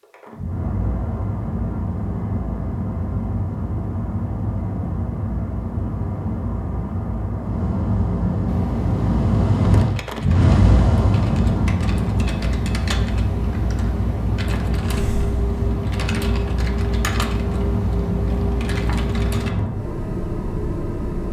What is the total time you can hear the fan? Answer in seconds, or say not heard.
21 s.